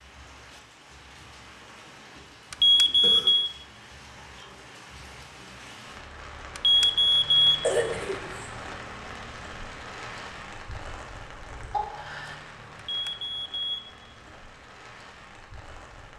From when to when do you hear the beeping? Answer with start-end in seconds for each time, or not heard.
2.5-3.5, 6.5-7.7, 12.8-13.9.